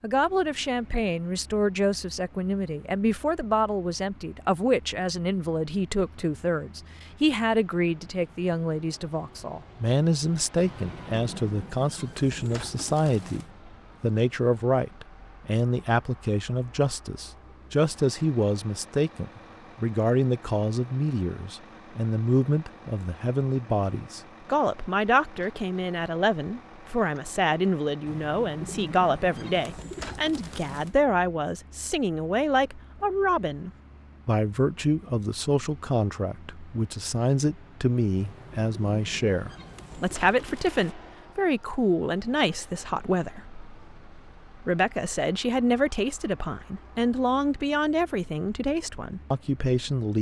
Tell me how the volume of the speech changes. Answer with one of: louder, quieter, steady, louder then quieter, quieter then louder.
steady.